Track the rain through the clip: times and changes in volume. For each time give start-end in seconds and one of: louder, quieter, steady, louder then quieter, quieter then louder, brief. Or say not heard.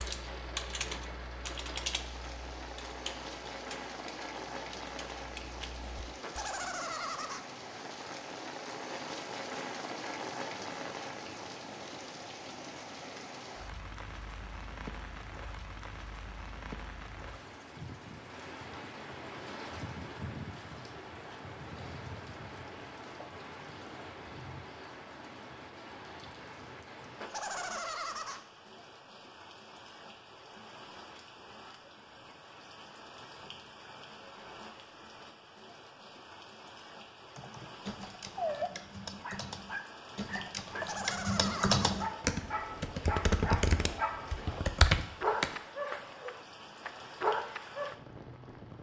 0.0-48.7 quieter.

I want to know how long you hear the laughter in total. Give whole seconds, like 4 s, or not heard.
4 s.